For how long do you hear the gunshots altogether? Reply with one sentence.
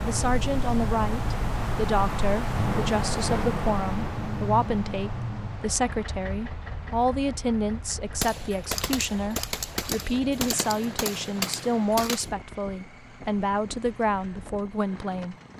The gunshots can be heard for 4 seconds in total.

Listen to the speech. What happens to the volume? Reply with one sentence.
The volume of the speech stays about the same.